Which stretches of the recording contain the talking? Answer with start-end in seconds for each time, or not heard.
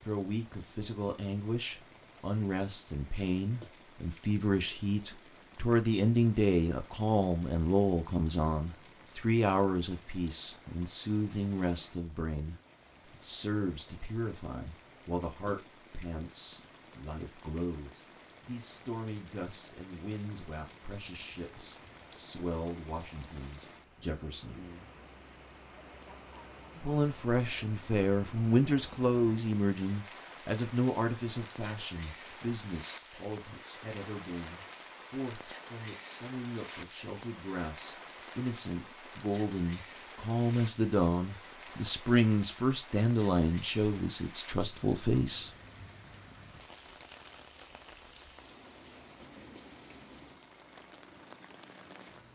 0.0-24.6, 26.8-45.5.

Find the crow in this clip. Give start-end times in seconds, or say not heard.
not heard.